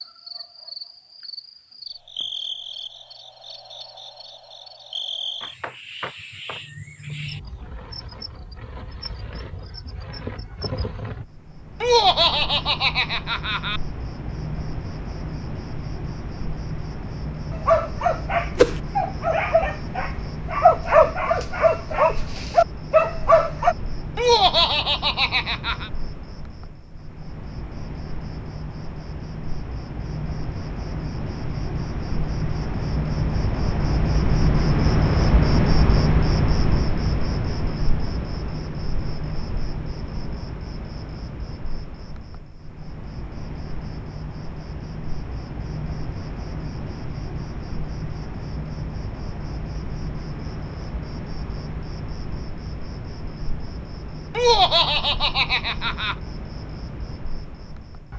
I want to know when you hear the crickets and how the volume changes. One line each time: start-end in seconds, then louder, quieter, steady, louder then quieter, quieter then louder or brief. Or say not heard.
0.0-58.1 louder then quieter.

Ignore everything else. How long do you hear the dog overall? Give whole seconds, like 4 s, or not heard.
6 s.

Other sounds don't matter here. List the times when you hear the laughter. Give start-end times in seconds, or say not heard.
11.8-13.8, 24.1-25.9, 54.4-56.1.